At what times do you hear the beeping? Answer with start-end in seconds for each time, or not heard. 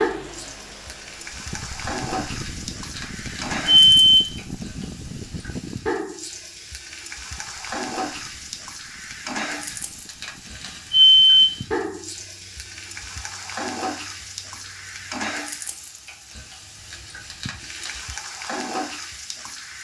2.4-4.5, 9.7-11.7, 16.9-18.1.